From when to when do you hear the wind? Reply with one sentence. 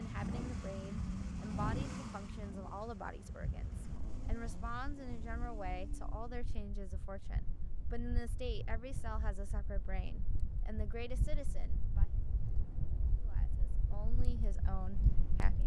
You can hear the wind from 0.0 to 15.6 s.